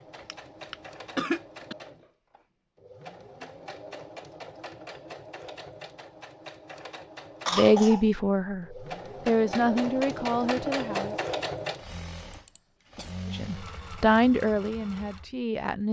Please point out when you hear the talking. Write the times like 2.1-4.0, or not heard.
7.5-11.2, 13.3-15.8.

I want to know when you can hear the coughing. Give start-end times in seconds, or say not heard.
0.1-1.8, 7.5-8.1, 12.3-13.2.